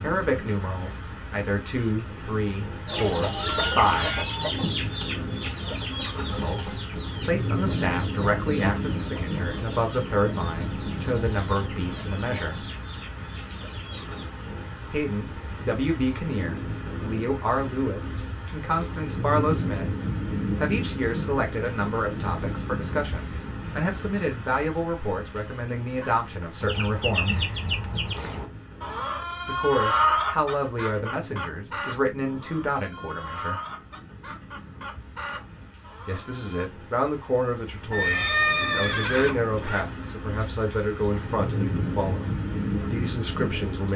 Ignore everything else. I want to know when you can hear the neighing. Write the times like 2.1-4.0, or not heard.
3.4-4.2, 37.9-39.8.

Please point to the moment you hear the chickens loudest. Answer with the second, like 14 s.
30 s.